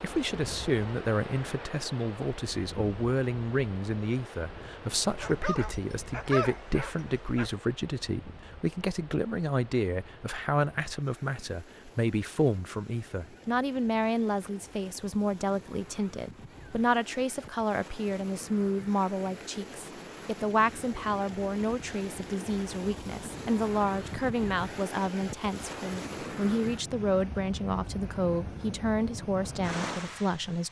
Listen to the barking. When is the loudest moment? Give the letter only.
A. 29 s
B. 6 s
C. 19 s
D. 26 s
B.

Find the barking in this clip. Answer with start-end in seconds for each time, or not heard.
5.1-7.5.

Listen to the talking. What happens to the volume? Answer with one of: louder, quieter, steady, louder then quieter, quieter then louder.
steady.